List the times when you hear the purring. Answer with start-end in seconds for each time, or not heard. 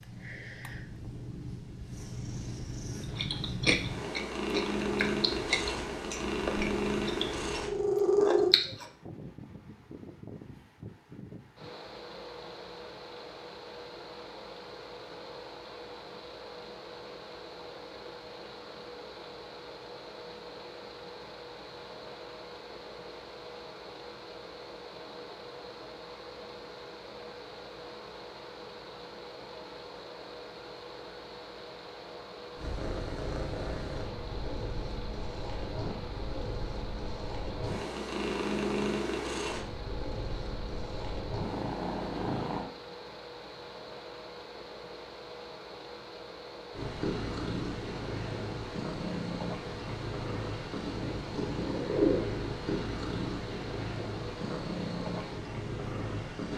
0.0-8.6, 32.5-42.6, 46.7-56.5.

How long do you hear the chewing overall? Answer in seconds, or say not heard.
6 s.